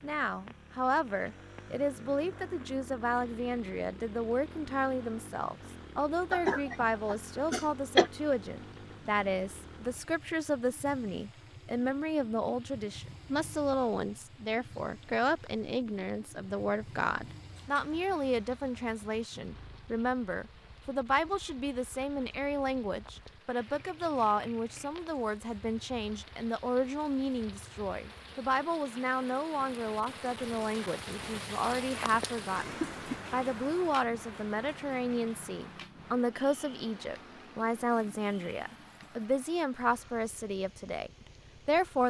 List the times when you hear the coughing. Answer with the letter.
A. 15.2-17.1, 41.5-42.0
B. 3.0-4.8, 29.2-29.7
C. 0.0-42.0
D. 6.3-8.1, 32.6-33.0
D.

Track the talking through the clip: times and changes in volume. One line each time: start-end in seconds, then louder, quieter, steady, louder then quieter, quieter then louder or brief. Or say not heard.
0.0-42.0 steady.